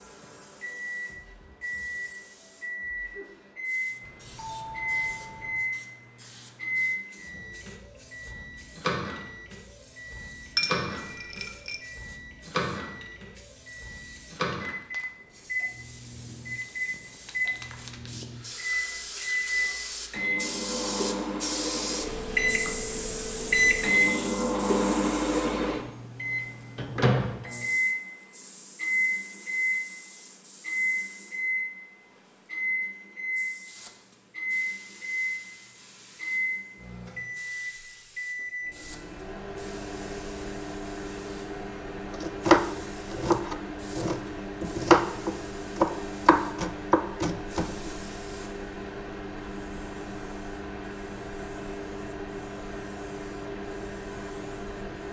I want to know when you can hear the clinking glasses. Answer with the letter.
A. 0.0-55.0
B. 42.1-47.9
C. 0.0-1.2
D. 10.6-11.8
D.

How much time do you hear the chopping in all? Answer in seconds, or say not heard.
6 s.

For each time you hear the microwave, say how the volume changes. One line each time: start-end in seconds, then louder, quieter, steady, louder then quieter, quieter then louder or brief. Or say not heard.
0.0-55.0 louder then quieter.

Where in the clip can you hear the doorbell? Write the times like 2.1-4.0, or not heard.
4.0-5.7.